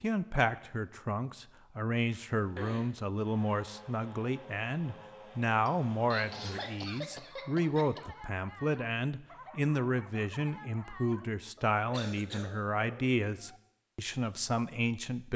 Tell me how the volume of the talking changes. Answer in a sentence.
The volume of the talking stays about the same.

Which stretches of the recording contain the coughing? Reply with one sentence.
The coughing can be heard from 2.1 to 2.9 s, from 5.7 to 8.0 s and from 11.9 to 12.5 s.